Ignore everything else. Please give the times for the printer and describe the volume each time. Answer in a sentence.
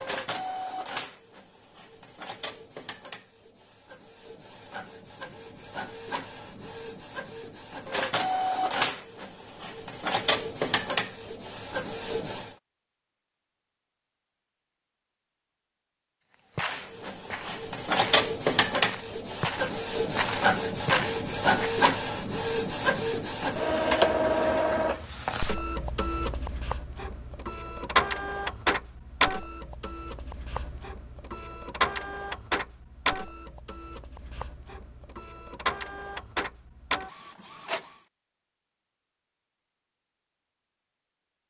The printer can be heard from 0.0 to 12.6 s, getting quieter then louder; and from 16.6 to 38.0 s, getting quieter.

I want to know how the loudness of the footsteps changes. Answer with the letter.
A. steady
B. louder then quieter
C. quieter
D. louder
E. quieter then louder
D.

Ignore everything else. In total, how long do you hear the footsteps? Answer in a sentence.
You can hear the footsteps for 5 seconds altogether.